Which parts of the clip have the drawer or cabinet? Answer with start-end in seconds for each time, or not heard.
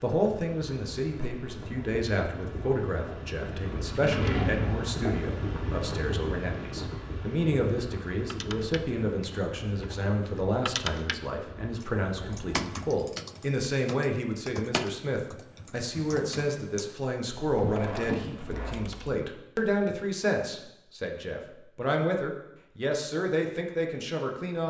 3.9-4.8, 9.2-10.2, 17.6-18.8.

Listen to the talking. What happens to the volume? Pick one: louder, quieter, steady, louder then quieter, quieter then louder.
steady.